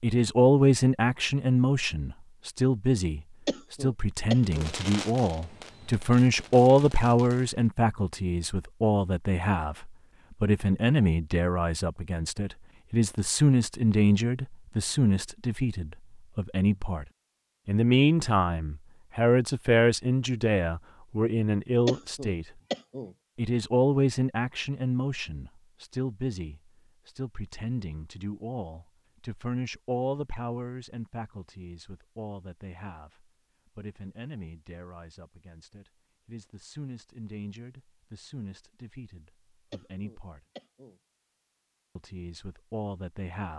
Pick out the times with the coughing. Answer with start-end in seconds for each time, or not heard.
3.5-4.8, 21.9-23.1, 39.7-41.0.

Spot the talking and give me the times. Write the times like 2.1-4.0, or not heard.
0.0-17.1, 17.6-22.5, 23.4-40.4, 42.0-43.5.